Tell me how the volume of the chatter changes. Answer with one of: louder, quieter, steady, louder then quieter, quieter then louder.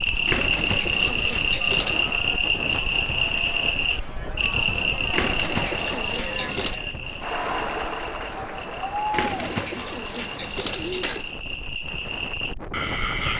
louder.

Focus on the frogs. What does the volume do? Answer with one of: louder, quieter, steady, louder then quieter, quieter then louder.
quieter then louder.